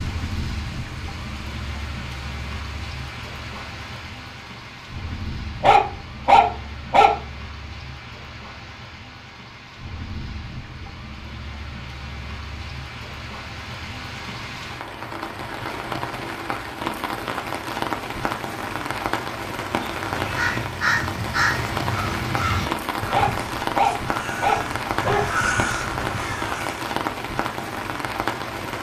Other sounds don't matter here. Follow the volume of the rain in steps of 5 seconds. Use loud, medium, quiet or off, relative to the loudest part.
medium, medium, medium, loud, loud, loud.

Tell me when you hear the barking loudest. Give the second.
6 s.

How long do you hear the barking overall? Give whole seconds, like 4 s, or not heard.
4 s.